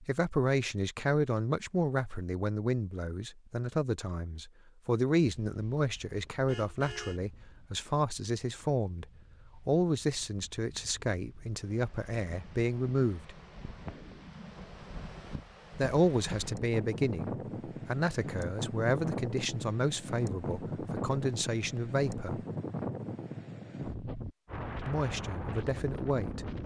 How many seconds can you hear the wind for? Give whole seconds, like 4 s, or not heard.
21 s.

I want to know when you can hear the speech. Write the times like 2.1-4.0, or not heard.
0.0-13.3, 15.8-22.4, 24.9-26.6.